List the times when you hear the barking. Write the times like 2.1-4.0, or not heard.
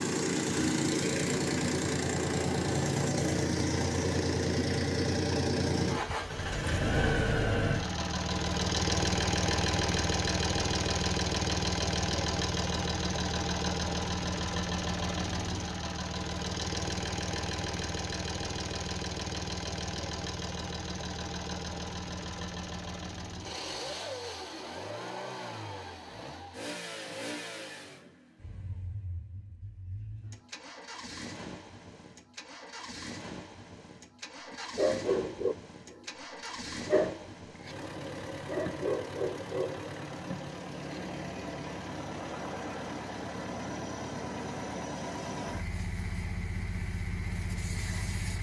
34.5-41.0.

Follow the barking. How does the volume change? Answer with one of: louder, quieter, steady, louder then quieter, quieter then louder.
quieter then louder.